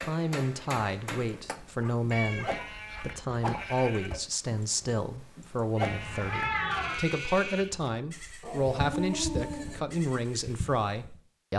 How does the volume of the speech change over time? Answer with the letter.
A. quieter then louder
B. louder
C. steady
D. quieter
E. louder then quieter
C.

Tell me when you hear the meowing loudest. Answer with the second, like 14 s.
7 s.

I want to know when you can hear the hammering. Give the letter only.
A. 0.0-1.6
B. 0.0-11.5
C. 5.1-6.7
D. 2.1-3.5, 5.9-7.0
A.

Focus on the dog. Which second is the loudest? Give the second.
9 s.